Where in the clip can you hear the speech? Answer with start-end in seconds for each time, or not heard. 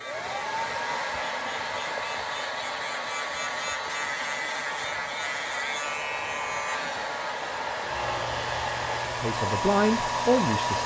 9.1-10.8.